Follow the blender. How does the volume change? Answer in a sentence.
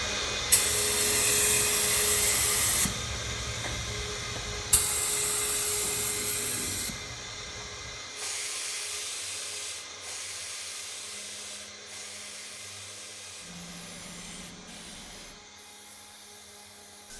The volume of the blender goes down.